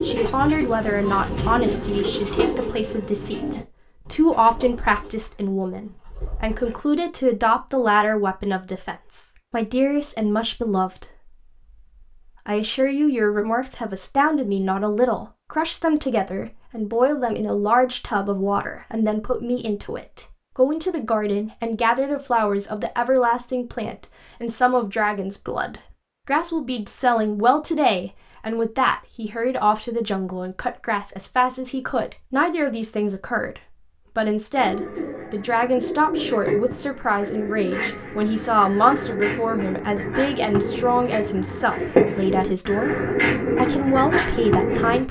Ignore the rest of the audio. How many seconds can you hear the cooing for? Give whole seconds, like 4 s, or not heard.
17 s.